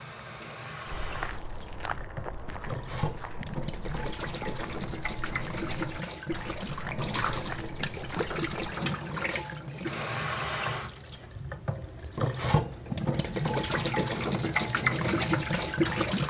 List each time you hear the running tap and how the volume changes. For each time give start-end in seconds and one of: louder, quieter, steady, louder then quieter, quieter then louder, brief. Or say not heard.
0.0-16.2 louder.